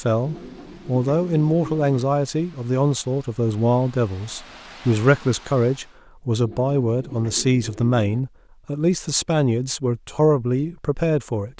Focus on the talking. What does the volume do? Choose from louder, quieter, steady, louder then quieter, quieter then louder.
steady.